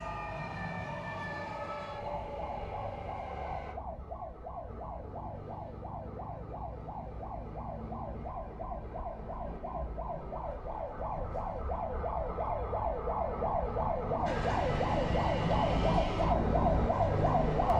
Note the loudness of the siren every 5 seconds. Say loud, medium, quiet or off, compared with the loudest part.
quiet, quiet, medium, loud.